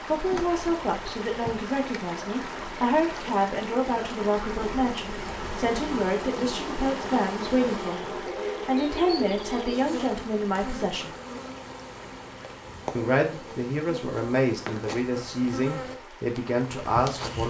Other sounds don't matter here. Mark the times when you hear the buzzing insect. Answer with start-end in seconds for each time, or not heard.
0.0-17.4.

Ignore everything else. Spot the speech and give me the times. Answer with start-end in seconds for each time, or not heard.
0.1-11.2, 12.9-17.4.